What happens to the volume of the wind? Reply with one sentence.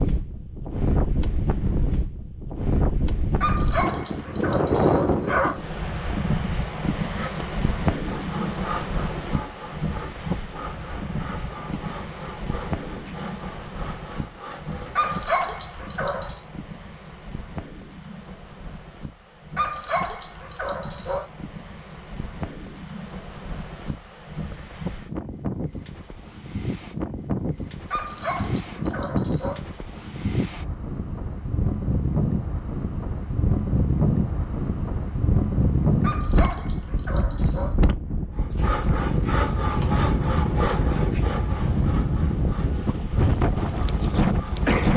The volume of the wind goes down, then up.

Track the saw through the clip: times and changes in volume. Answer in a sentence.
You can hear the saw from 7.0 to 15.3 s, getting quieter; and from 38.4 to 44.9 s, getting quieter.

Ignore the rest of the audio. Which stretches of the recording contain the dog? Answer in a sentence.
You can hear the dog from 3.4 to 5.6 s, from 14.9 to 16.4 s, from 19.6 to 21.2 s, from 27.9 to 29.6 s and from 36.0 to 37.8 s.